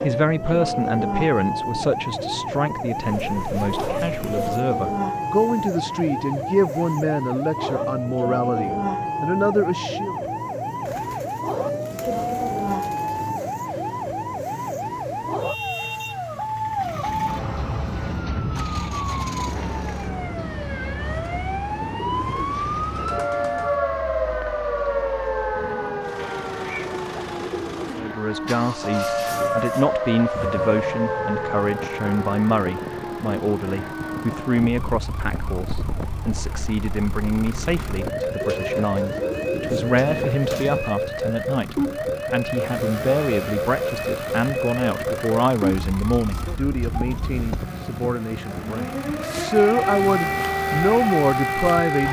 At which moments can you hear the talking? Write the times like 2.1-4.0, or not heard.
0.0-10.2, 27.9-52.0.